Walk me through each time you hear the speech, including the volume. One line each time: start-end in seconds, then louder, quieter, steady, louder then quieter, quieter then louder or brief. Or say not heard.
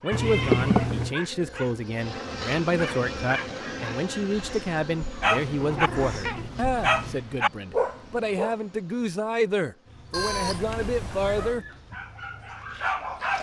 0.0-11.7 steady.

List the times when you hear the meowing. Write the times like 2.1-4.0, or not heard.
0.1-1.1, 5.3-7.2, 10.1-11.6.